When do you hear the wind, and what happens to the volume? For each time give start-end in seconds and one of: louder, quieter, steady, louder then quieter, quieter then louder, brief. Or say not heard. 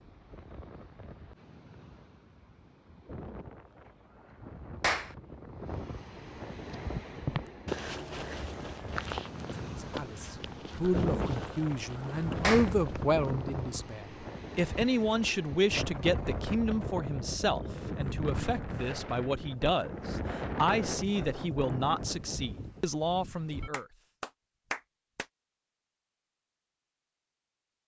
0.0-23.7 louder.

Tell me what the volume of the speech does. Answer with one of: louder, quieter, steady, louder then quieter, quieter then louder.
steady.